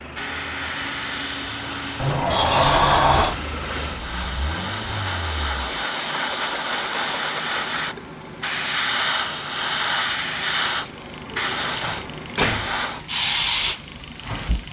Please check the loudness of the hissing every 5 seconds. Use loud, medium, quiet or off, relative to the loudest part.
medium, loud, loud.